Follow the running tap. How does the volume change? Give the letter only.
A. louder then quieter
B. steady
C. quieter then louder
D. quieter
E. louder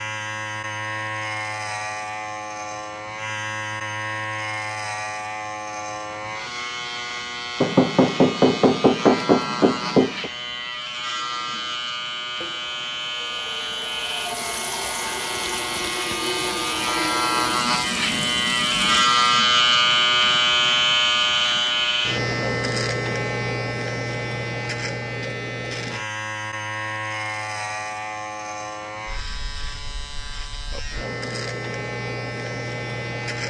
E.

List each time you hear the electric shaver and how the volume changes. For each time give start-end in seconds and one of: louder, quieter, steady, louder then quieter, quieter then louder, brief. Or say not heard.
0.0-33.4 louder then quieter.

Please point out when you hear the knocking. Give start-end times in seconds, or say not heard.
7.6-10.3.